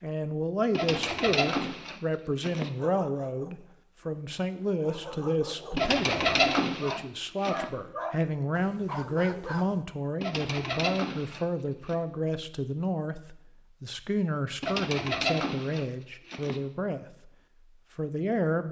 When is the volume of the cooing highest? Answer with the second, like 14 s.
6 s.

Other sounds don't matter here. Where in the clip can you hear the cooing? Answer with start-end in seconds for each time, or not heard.
0.7-2.7, 5.8-7.7, 10.2-11.9, 14.6-16.6.